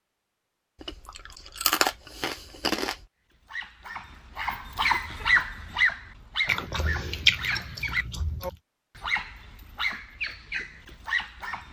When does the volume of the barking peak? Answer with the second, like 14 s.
5 s.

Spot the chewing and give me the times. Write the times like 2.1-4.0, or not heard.
0.8-3.0, 6.5-8.6.